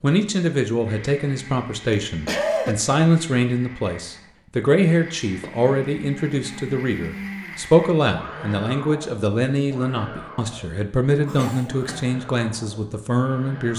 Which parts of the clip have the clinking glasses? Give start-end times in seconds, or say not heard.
not heard.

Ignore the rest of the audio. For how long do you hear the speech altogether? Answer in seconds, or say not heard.
14 s.